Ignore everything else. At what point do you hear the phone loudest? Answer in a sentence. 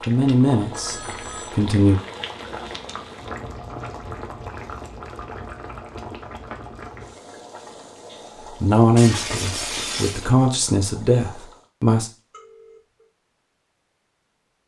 The volume of the phone peaks at 1 second.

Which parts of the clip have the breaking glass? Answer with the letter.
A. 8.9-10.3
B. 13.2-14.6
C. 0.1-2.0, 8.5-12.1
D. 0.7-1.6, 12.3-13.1
A.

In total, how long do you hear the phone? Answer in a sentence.
You can hear the phone for 2 seconds altogether.